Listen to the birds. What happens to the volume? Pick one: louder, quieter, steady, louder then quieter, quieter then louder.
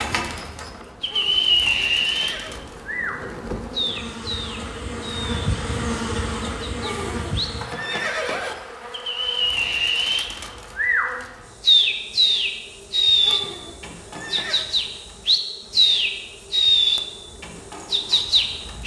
quieter then louder.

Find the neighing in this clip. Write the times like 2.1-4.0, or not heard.
1.1-2.6, 6.8-8.6, 13.2-14.7.